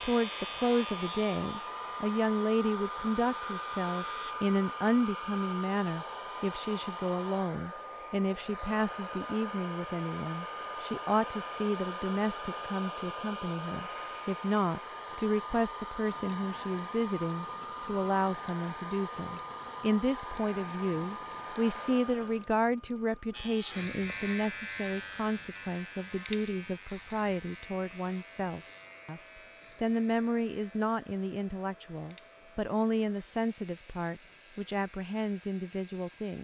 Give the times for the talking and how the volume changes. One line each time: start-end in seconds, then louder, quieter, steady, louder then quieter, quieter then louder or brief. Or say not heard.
0.0-36.3 steady.